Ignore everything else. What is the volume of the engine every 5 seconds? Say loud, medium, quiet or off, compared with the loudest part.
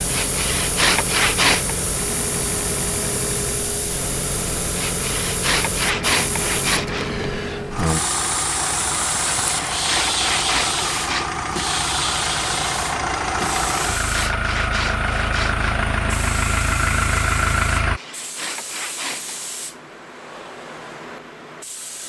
medium, medium, loud, loud, off.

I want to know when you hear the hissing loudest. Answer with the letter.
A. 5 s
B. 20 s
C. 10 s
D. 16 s
C.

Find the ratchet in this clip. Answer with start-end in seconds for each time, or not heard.
not heard.